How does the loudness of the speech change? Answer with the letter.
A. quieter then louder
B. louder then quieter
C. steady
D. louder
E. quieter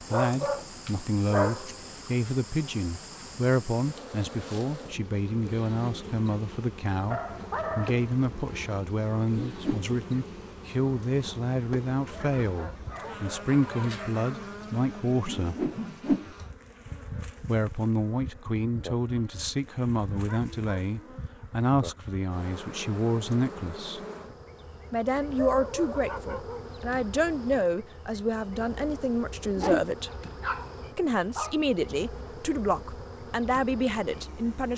C.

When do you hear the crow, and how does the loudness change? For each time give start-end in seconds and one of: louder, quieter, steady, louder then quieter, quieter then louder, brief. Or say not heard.
not heard.